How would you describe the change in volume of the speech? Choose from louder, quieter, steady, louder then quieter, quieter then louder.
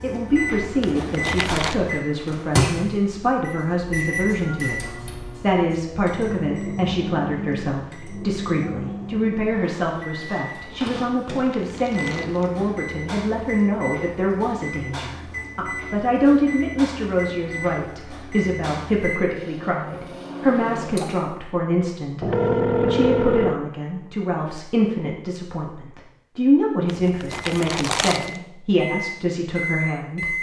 steady.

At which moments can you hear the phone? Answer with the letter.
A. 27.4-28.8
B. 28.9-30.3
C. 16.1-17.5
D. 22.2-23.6
D.